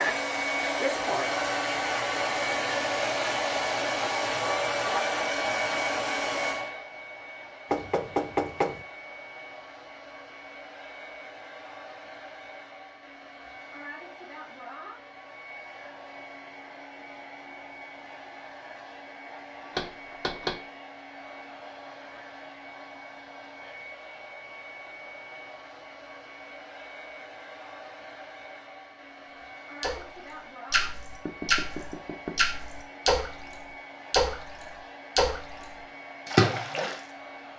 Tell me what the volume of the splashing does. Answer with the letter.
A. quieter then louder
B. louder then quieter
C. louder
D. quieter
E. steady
C.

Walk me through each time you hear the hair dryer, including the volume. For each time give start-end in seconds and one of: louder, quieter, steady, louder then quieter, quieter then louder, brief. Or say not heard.
0.0-37.5 quieter.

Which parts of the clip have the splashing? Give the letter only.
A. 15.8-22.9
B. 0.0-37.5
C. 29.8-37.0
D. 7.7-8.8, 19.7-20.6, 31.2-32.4
C.